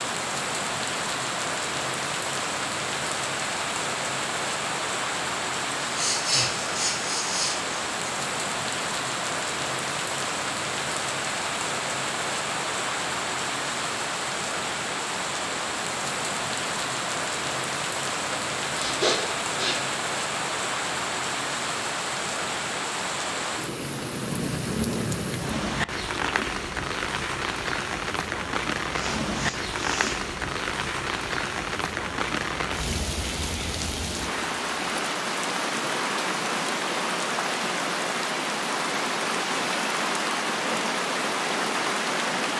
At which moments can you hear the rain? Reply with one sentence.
You can hear the rain from 0.0 to 42.5 s.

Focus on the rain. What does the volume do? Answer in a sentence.
The loudness of the rain stays about the same.